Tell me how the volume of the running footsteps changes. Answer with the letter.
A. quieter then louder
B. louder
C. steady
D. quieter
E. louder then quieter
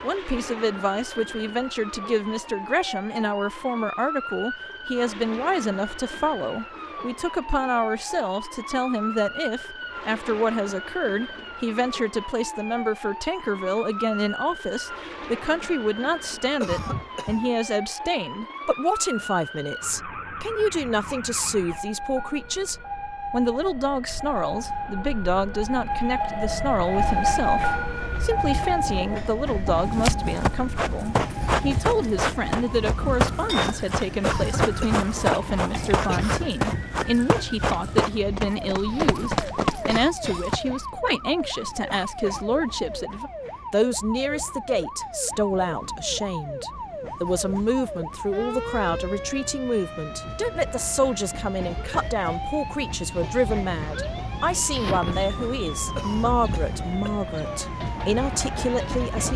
C.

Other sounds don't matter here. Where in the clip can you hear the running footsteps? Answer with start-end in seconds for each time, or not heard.
29.9-40.6.